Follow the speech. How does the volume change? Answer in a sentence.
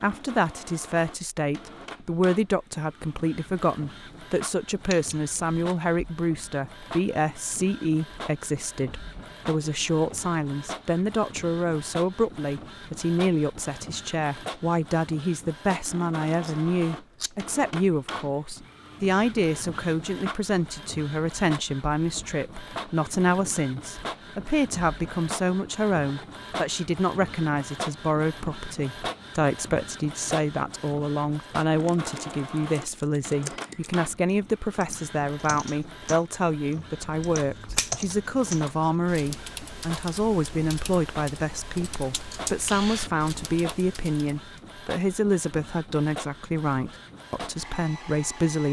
The loudness of the speech stays about the same.